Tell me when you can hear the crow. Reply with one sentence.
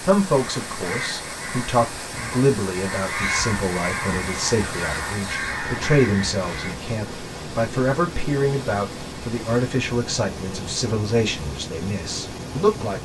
The crow can be heard from 0.2 to 6.8 s.